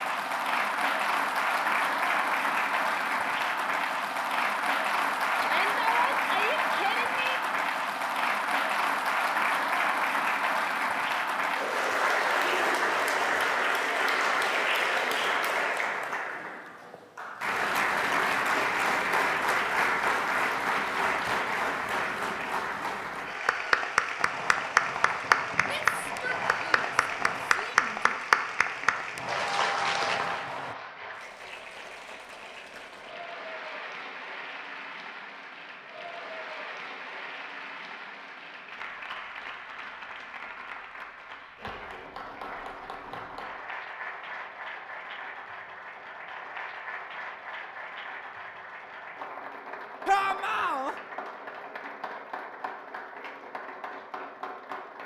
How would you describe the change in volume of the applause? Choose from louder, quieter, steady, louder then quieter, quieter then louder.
quieter.